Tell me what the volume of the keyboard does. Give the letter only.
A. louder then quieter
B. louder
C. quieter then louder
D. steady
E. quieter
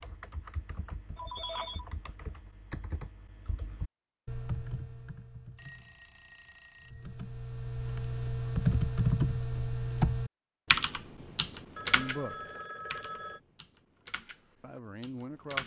A.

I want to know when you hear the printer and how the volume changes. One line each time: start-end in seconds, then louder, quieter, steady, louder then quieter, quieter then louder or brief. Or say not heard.
not heard.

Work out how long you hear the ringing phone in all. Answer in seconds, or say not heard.
4 s.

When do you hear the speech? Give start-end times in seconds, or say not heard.
11.9-12.5, 14.6-15.6.